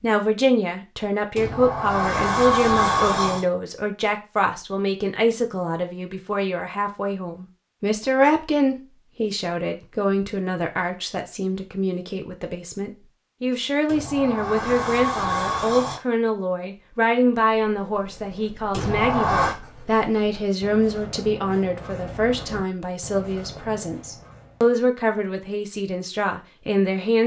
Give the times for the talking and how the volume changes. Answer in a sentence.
The talking can be heard from 0.0 to 27.2 s, at a steady volume.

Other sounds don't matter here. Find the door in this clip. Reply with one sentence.
You can hear the door from 1.4 to 3.5 s, from 13.8 to 16.0 s and from 18.7 to 19.6 s.